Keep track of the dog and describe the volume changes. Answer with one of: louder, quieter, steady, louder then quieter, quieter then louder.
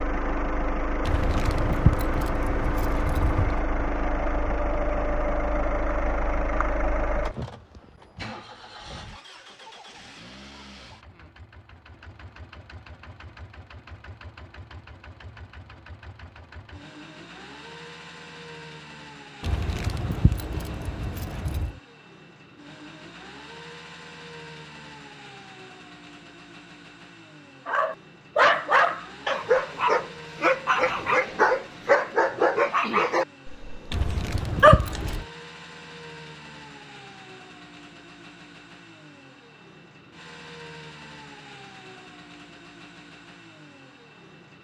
steady.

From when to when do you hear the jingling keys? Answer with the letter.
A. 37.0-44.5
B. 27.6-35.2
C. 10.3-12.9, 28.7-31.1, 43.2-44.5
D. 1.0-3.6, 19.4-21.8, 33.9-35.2
D.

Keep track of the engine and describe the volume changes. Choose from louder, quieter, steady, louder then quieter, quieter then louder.
quieter.